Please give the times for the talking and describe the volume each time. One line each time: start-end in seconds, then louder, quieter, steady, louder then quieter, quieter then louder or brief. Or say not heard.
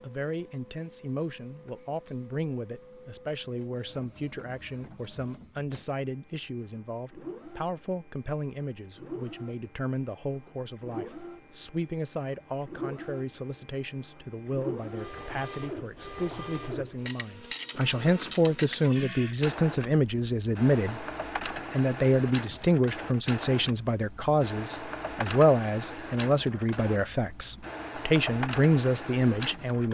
0.0-29.9 louder.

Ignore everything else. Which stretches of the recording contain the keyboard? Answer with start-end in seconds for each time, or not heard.
not heard.